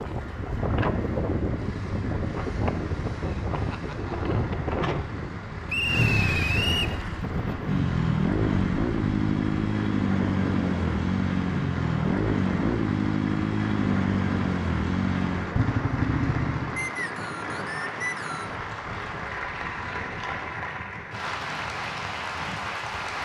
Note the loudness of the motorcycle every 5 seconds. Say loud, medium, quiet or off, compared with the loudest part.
quiet, loud, loud, loud, off.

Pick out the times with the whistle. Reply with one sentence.
You can hear the whistle from 5.7 to 7.0 s and from 16.8 to 18.6 s.